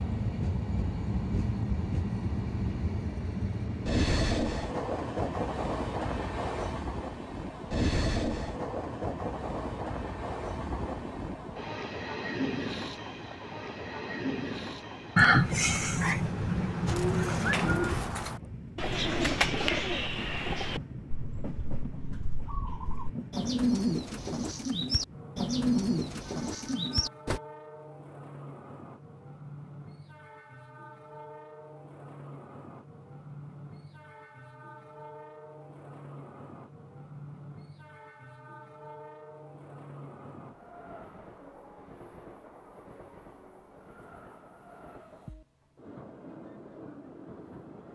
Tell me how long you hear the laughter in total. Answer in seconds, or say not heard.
3 s.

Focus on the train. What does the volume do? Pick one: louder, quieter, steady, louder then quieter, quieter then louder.
quieter.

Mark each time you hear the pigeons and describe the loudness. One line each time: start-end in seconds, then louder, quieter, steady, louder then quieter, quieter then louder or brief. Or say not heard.
16.9-27.4 quieter then louder.